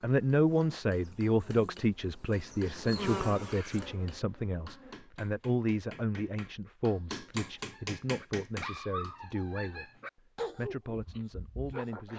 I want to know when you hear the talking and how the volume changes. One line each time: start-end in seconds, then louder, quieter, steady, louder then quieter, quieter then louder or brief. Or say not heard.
0.0-9.9 quieter
10.6-12.1 brief.